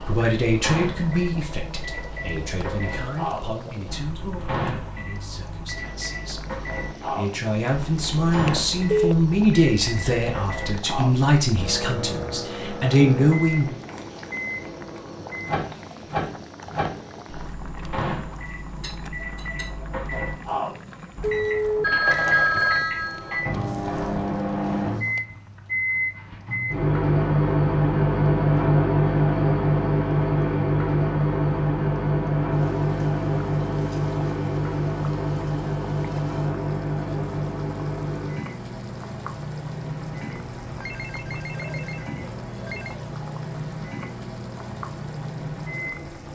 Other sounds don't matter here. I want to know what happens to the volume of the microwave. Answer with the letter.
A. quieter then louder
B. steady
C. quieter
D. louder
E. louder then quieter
E.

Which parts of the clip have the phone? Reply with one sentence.
You can hear the phone from 8.3 to 9.2 s, from 21.2 to 23.4 s and from 40.8 to 43.0 s.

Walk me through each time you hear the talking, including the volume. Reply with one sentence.
The talking can be heard from 0.0 to 13.8 s, getting quieter then louder.